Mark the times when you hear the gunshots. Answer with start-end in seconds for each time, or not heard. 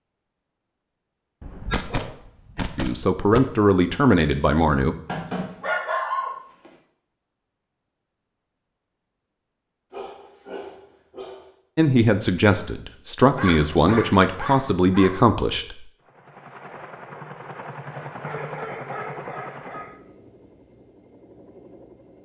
1.4-3.4.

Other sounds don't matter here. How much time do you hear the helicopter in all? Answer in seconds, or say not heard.
6 s.